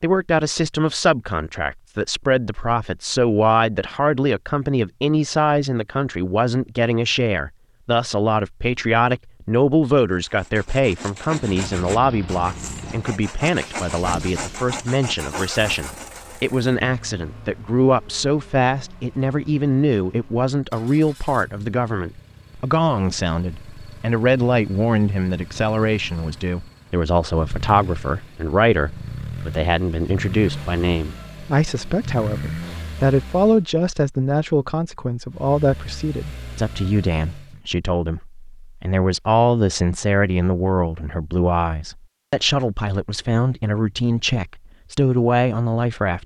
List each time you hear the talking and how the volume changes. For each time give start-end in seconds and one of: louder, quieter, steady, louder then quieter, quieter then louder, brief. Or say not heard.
0.0-46.2 steady.